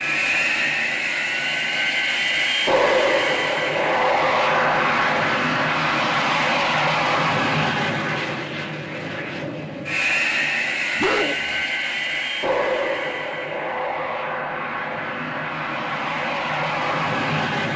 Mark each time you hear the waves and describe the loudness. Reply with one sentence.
You can't hear the waves here.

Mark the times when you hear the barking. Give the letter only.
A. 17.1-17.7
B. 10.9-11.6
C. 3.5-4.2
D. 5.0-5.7
B.